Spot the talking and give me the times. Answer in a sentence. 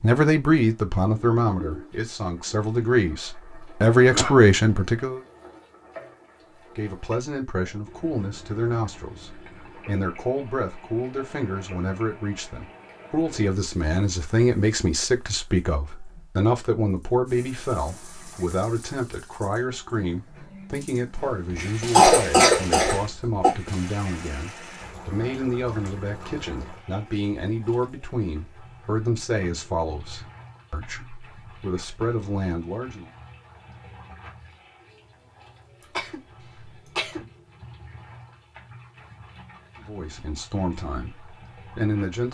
You can hear the talking from 0.0 to 5.2 s, from 6.8 to 33.1 s and from 39.8 to 42.2 s.